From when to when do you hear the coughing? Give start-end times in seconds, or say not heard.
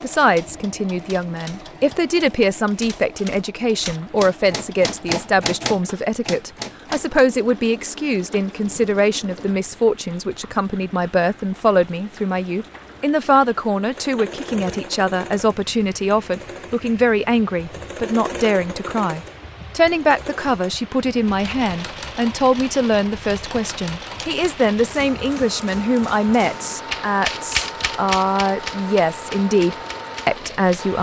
not heard.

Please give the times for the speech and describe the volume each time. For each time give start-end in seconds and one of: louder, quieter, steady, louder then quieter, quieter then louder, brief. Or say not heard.
0.0-30.9 steady.